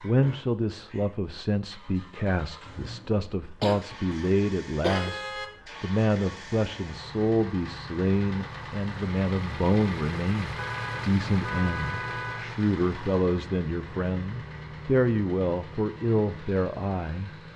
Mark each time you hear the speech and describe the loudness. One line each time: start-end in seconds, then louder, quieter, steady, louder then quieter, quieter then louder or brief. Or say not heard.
0.0-17.3 steady.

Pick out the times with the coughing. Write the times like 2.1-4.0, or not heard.
3.6-5.2.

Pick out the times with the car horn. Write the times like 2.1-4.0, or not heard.
4.8-5.5, 10.6-12.4.